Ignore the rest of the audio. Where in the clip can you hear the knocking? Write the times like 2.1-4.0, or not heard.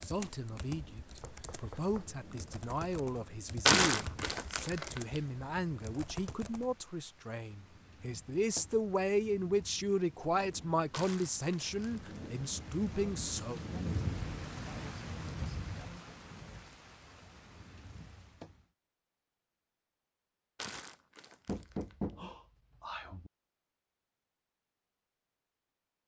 1.2-2.1, 21.4-23.3.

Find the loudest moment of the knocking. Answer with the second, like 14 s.
22 s.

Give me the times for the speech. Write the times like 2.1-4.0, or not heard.
0.0-13.6.